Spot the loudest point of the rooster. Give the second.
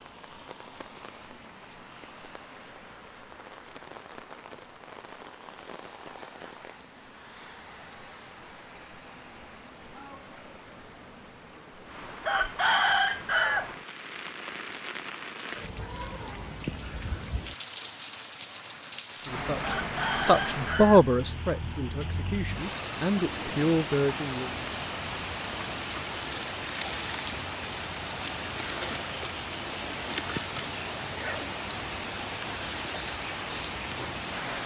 13 s.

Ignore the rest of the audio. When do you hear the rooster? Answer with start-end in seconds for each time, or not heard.
12.2-13.7, 19.6-21.1.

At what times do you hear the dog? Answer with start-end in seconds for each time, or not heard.
not heard.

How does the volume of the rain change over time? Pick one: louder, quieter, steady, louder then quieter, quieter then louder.
louder.